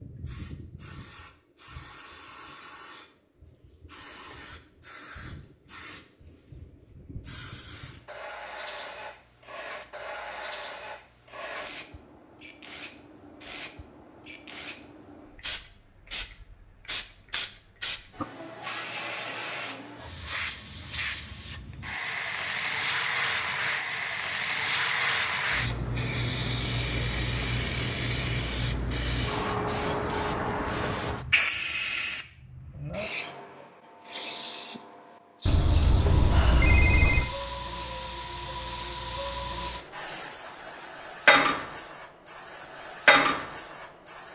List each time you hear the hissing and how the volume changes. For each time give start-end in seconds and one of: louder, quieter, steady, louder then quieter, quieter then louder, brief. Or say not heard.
0.0-44.2 louder.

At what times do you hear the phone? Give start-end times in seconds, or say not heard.
35.5-37.2.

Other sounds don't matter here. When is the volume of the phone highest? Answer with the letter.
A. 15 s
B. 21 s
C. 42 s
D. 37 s
D.